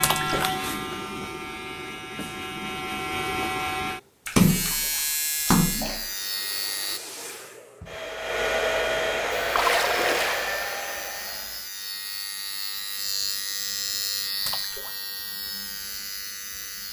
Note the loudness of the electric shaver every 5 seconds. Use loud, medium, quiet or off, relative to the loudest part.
loud, loud, loud, medium.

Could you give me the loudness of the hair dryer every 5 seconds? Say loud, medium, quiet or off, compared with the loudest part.
off, loud, loud, off.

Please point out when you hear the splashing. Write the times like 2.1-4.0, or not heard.
0.0-0.5, 4.2-6.0, 9.5-10.5, 14.4-14.9.